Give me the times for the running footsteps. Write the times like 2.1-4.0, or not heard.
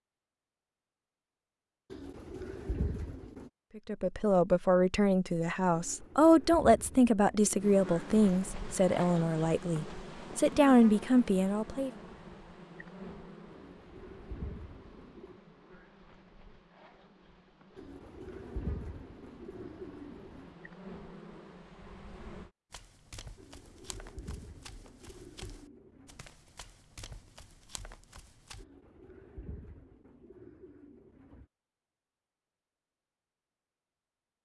22.7-28.6.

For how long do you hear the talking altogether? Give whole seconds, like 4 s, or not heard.
8 s.